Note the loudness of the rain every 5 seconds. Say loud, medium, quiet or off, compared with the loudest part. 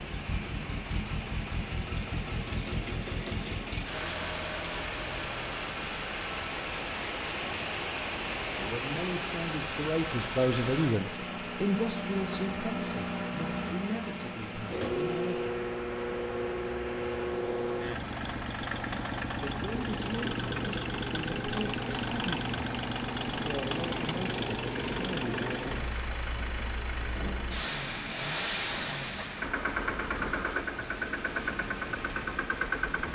medium, loud, medium, medium, medium, medium, medium.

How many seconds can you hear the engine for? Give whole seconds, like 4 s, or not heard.
33 s.